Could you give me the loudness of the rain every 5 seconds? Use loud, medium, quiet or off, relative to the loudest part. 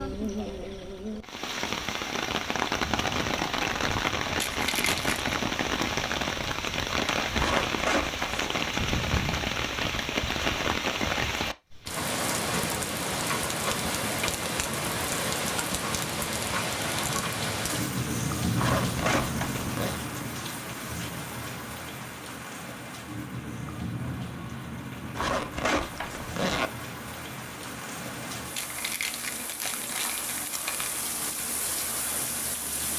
loud, loud, loud, loud, medium, medium, medium.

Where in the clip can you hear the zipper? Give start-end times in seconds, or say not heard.
7.3-8.6, 18.6-20.0, 25.1-26.7.